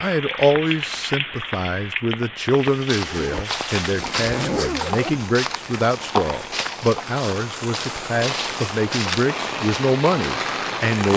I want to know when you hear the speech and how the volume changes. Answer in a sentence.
The speech can be heard from 0.0 to 11.1 s, at a steady volume.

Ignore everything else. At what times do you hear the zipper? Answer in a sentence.
You can hear the zipper from 2.9 to 5.2 s.